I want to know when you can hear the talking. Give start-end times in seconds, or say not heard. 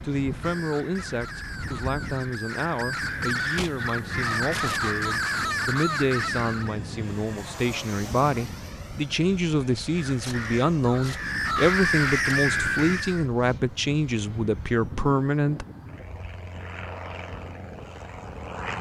0.0-15.7.